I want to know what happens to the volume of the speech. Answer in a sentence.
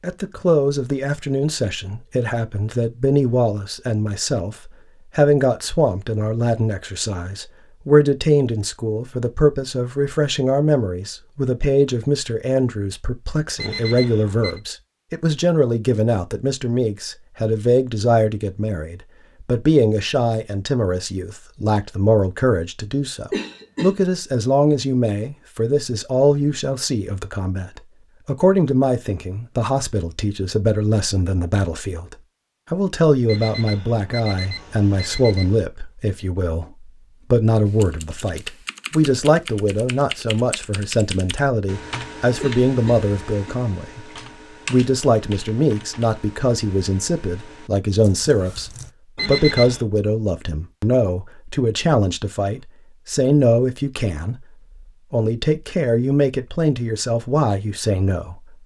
The loudness of the speech stays about the same.